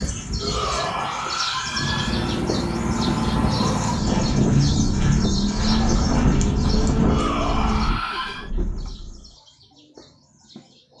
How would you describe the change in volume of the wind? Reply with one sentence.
The loudness of the wind goes up.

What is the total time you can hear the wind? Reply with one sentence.
You can hear the wind for 8 seconds altogether.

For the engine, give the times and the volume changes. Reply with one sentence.
You can hear the engine from 1.6 to 9.3 s, getting quieter.